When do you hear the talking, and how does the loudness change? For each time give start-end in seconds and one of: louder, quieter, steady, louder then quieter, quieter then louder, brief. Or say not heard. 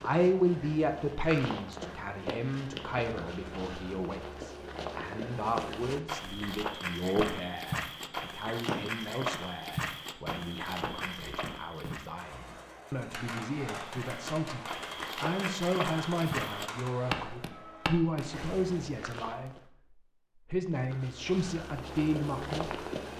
0.0-19.5 quieter then louder
20.5-22.9 brief.